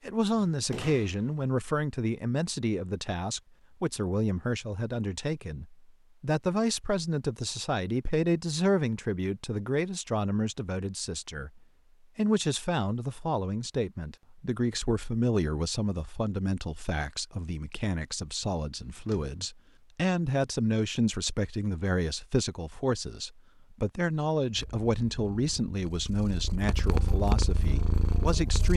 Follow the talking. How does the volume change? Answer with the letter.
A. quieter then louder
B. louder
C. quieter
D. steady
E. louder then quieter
D.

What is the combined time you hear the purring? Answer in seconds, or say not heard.
4 s.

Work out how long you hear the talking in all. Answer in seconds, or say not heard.
29 s.